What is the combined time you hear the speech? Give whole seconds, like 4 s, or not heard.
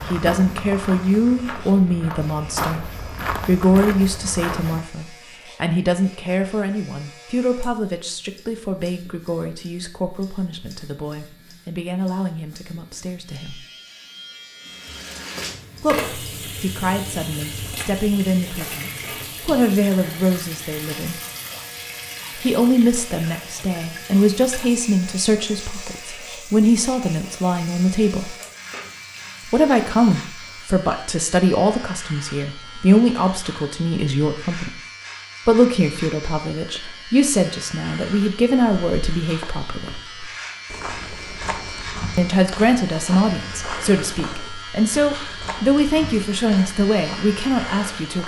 41 s.